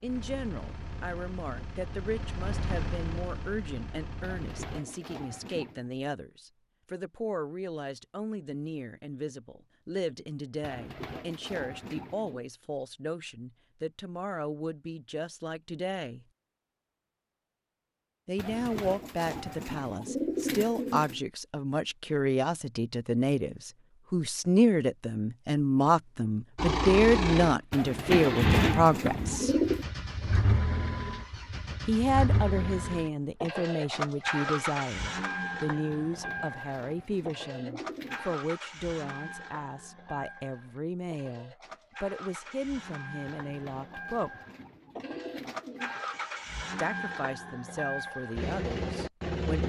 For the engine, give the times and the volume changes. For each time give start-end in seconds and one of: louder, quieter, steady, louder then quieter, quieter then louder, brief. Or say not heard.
0.0-4.8 louder then quieter
26.6-49.6 quieter then louder.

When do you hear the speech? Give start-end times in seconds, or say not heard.
0.0-16.2, 18.2-29.5, 31.9-44.3, 46.8-49.6.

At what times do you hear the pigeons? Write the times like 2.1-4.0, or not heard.
4.2-5.8, 10.6-12.4, 18.4-21.2, 27.7-29.9, 35.9-38.4, 43.4-46.0.